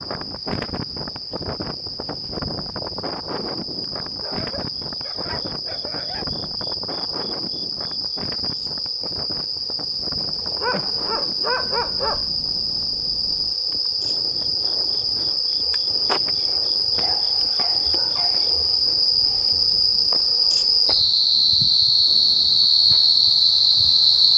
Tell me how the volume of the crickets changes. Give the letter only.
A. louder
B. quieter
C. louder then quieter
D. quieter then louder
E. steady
A.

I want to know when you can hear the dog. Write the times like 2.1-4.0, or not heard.
4.2-6.3, 10.6-12.2, 17.0-18.5.